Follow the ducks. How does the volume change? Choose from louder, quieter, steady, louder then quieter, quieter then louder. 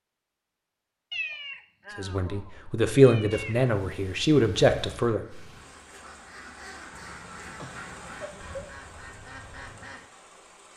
louder.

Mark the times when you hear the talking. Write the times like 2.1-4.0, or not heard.
1.9-5.2.